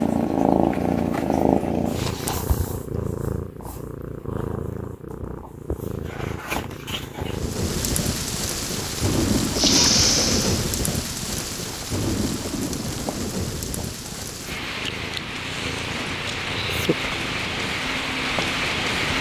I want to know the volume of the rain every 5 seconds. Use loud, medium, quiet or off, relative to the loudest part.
off, loud, loud, loud.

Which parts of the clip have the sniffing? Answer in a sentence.
The sniffing can be heard from 9.6 to 10.7 s.